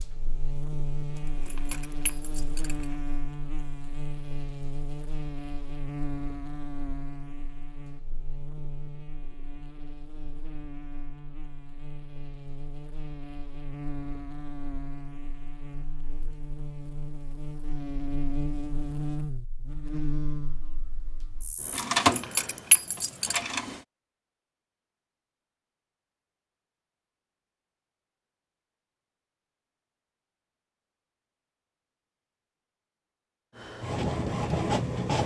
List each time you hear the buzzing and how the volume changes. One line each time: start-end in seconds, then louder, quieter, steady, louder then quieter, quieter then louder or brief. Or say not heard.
0.0-21.9 quieter then louder.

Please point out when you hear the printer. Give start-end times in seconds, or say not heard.
21.6-23.8, 33.5-35.2.